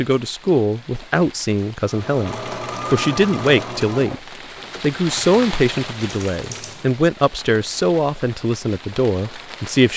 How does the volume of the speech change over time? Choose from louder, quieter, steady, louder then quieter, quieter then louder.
steady.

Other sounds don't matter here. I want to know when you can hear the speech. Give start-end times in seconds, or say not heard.
0.0-4.2, 4.8-9.9.